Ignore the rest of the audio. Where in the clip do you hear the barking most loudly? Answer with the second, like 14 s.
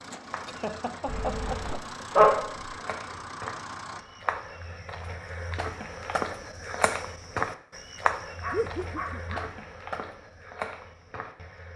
2 s.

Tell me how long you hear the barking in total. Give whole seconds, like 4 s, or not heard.
3 s.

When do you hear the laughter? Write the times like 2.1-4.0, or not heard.
0.5-1.8, 8.5-9.4.